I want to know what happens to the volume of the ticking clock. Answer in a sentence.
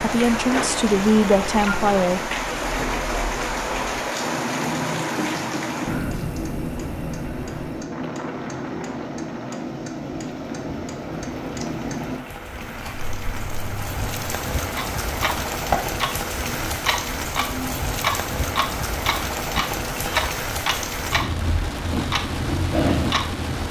The volume of the ticking clock goes up.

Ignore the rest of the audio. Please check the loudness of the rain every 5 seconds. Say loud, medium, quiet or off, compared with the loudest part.
loud, medium, medium, loud, loud.